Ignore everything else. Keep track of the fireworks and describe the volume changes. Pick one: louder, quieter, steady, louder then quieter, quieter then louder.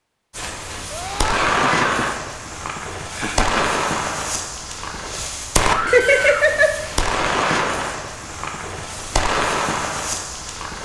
steady.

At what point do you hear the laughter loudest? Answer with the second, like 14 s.
6 s.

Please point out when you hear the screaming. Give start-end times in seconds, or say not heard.
0.9-2.1, 5.7-6.5.